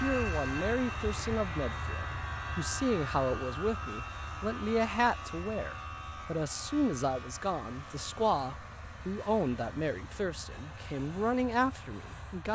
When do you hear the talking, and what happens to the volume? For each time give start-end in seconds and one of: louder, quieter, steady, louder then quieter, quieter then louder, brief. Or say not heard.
0.0-12.4 steady.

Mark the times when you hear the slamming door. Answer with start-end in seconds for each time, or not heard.
not heard.